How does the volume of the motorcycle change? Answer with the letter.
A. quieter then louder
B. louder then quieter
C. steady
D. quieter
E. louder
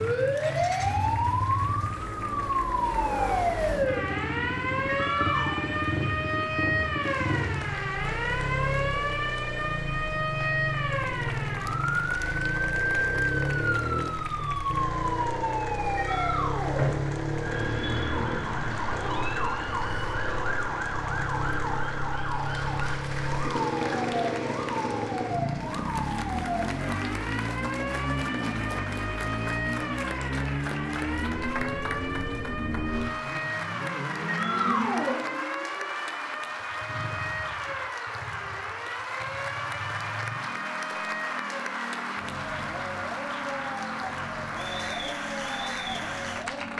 D.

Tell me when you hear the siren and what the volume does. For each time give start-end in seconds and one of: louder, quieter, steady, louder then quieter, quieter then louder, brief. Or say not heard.
0.0-46.7 quieter.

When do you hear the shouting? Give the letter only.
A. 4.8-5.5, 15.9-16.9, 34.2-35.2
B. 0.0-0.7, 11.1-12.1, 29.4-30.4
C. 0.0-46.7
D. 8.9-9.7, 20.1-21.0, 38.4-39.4
A.